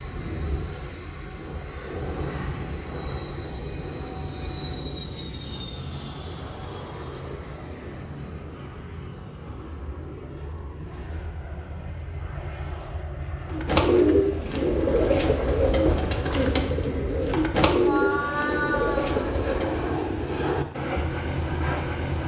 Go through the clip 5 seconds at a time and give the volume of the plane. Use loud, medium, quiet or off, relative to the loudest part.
medium, medium, medium, loud, loud.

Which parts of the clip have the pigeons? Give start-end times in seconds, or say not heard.
13.5-19.9.